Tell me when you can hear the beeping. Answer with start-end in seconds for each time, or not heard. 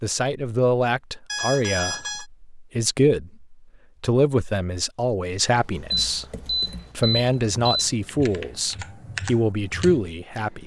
1.2-2.2, 5.9-7.9.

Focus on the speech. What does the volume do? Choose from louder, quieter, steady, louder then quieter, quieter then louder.
steady.